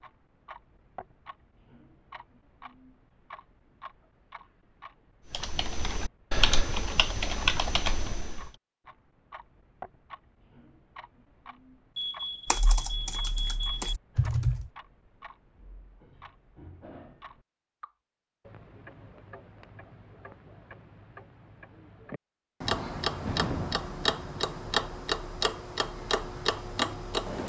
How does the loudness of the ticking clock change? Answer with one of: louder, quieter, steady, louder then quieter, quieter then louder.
louder.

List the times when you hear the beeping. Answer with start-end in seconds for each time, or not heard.
11.9-13.9.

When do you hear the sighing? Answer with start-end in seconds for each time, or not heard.
23.2-23.9.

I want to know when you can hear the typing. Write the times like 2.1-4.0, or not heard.
5.3-8.5, 12.4-14.7.